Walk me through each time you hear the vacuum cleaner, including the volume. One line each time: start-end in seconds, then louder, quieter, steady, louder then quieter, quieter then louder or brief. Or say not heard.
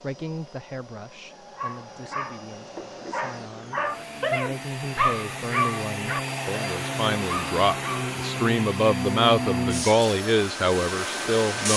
0.0-11.7 louder.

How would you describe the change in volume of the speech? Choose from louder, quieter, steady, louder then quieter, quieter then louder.
louder.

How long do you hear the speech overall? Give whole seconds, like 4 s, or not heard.
12 s.